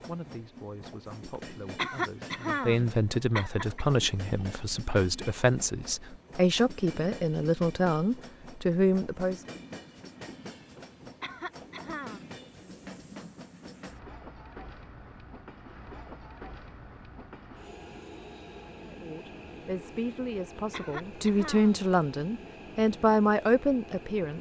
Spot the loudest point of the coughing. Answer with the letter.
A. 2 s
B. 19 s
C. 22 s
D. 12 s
A.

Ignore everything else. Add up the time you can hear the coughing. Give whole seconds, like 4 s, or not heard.
5 s.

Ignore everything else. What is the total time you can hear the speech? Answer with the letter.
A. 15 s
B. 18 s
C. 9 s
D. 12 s
A.